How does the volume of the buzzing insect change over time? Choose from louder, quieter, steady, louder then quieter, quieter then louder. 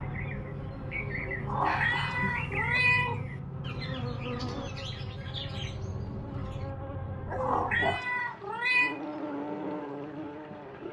steady.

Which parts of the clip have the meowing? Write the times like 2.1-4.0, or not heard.
1.4-3.1, 7.3-8.9.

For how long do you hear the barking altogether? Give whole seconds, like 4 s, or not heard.
2 s.